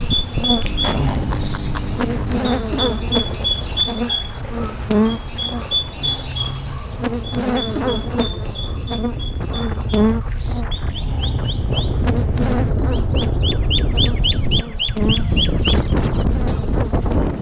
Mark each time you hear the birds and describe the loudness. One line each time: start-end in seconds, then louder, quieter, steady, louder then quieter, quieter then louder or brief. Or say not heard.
0.0-17.3 quieter then louder.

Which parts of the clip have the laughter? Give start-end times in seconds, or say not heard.
0.6-2.5.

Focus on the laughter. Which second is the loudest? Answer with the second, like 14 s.
1 s.